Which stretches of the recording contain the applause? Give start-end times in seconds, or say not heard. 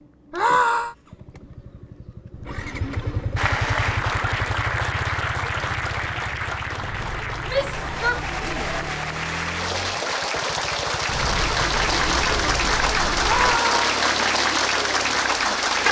3.4-15.8.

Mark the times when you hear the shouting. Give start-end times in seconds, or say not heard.
0.3-0.9, 7.5-8.8, 13.2-13.8.